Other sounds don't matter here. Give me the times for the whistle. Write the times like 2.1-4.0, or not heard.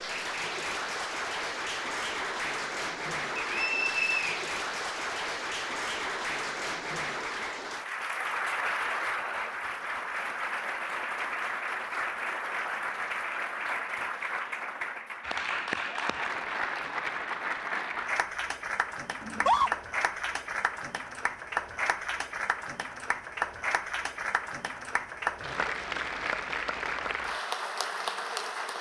3.4-4.4.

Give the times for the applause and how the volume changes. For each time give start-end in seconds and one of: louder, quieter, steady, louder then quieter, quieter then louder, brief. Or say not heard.
0.0-28.7 steady.